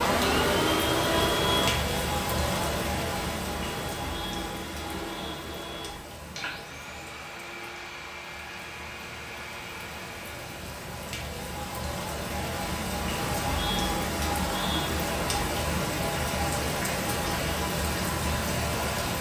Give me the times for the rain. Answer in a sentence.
You can hear the rain from 0.0 to 19.1 s.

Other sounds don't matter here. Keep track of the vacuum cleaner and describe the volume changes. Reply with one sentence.
The volume of the vacuum cleaner goes down.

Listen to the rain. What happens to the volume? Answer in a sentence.
The loudness of the rain goes down, then up.